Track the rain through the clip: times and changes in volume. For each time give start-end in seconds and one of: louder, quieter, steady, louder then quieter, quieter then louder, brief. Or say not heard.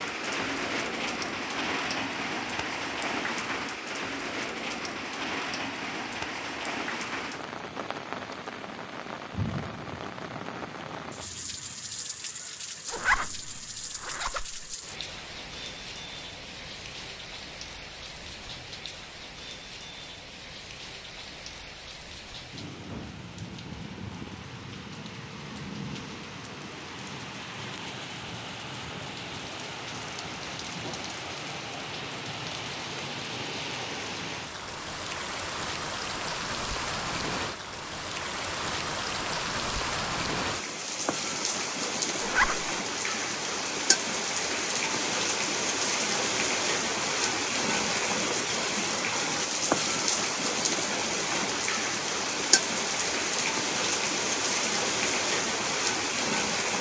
0.0-56.7 quieter then louder.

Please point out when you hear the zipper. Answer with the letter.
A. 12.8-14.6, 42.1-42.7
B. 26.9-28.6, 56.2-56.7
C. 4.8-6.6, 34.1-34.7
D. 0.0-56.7
A.